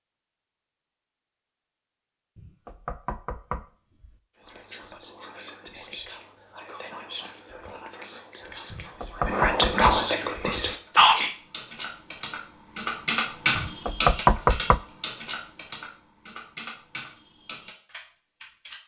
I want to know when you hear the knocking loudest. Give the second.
14 s.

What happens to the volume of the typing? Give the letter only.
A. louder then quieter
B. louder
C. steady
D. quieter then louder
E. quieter
A.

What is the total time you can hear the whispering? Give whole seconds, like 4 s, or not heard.
7 s.